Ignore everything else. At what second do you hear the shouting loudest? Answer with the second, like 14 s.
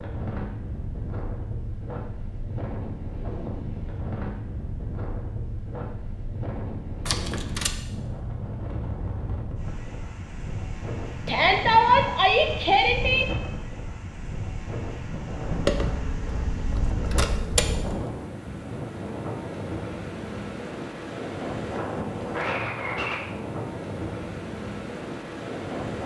12 s.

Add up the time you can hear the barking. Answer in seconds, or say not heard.
not heard.